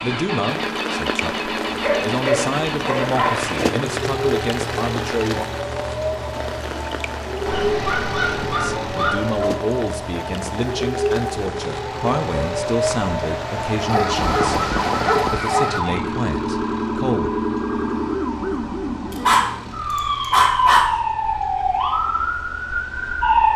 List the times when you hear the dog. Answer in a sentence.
The dog can be heard from 1.6 to 3.5 s, from 7.5 to 9.4 s, from 13.8 to 15.8 s and from 19.1 to 20.9 s.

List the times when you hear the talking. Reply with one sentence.
The talking can be heard from 0.0 to 5.5 s and from 8.5 to 17.3 s.